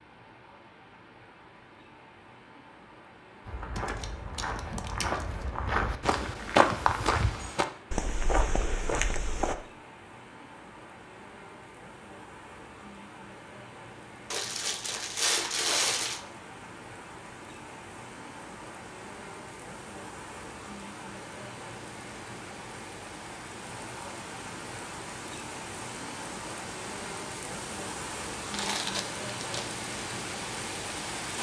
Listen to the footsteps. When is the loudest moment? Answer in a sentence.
The loudest moment of the footsteps is at 7 seconds.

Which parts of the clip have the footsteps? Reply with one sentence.
The footsteps can be heard from 3.5 to 9.6 s.